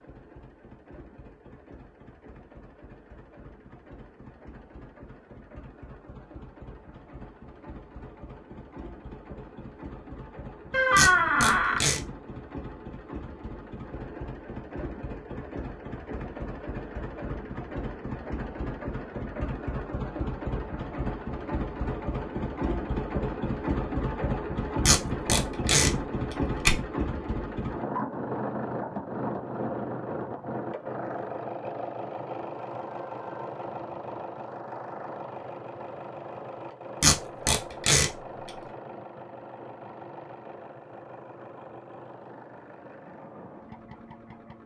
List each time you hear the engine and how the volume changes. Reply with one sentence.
The engine can be heard from 0.0 to 44.6 s, getting louder then quieter.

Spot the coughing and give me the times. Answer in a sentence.
The coughing can't be heard in this clip.